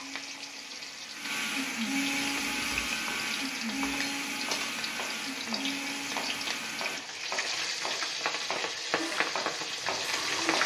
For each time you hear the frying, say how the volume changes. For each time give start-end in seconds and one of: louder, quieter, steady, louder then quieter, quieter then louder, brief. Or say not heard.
0.0-10.6 louder.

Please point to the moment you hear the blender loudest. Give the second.
2 s.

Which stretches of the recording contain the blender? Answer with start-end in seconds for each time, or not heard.
0.0-7.0, 8.9-10.6.